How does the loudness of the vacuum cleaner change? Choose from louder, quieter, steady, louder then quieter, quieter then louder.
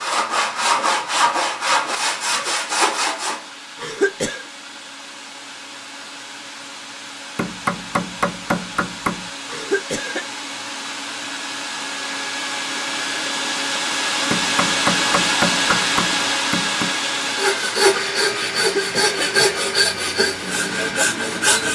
louder then quieter.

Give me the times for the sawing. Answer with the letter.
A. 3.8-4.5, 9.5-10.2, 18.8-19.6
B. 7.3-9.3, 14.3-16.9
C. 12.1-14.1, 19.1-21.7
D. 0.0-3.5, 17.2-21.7
D.